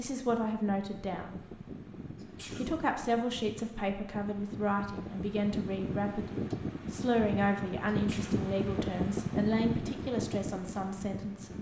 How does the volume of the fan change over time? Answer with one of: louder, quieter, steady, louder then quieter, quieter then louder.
louder.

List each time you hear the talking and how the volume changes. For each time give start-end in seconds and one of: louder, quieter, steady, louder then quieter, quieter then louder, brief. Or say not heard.
0.0-1.4 brief
2.5-11.5 steady.